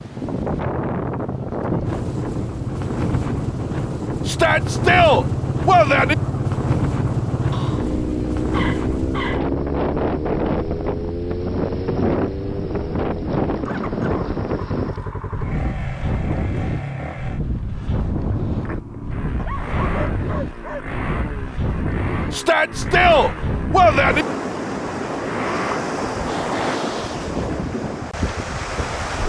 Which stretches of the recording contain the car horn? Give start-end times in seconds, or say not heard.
not heard.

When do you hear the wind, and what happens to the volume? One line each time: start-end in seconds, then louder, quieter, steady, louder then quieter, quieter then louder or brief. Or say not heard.
0.0-29.2 steady.